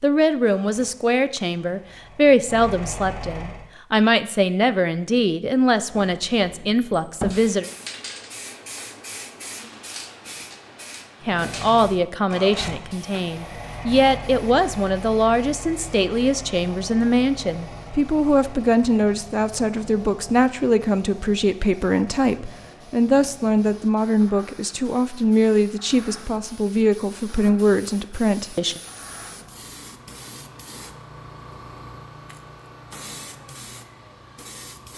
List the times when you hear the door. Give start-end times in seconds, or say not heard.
5.9-7.3.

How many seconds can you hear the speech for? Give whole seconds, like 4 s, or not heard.
25 s.